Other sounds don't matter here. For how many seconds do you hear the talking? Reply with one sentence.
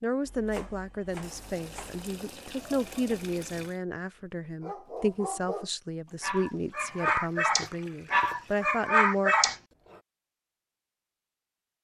The talking can be heard for 9 seconds in total.